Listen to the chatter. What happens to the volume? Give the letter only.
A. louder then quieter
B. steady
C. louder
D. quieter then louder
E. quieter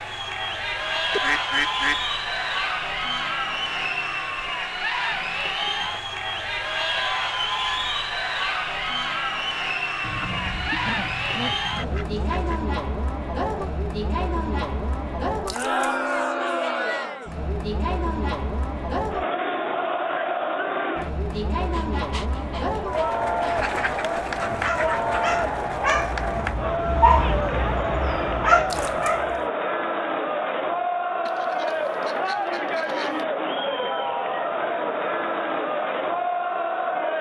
B.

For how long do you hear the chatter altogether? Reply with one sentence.
The chatter can be heard for 37 seconds in total.